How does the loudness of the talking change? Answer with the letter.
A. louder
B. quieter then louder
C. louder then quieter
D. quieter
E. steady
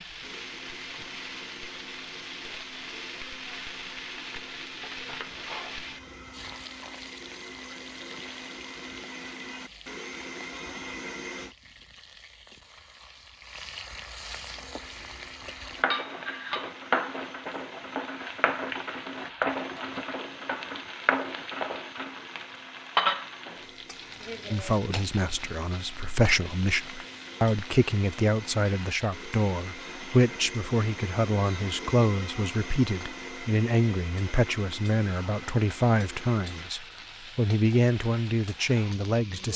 E.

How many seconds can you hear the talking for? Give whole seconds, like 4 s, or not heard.
15 s.